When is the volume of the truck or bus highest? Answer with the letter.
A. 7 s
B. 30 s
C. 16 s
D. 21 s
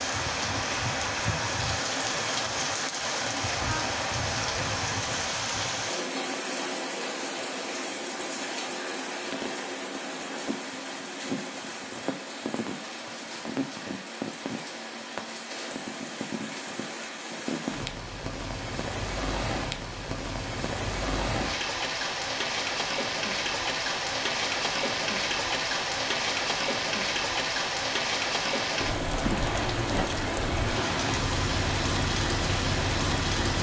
B.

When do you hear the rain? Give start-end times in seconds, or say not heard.
0.0-33.5.